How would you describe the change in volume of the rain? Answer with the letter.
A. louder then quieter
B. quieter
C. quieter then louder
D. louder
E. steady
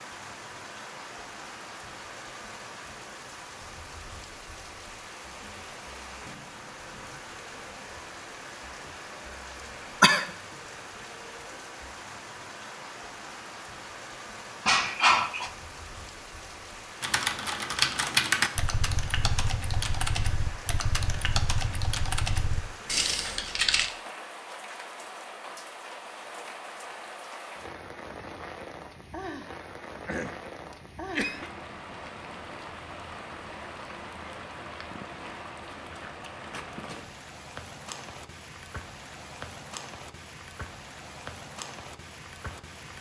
E.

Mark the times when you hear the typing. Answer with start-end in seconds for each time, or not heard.
17.0-23.9.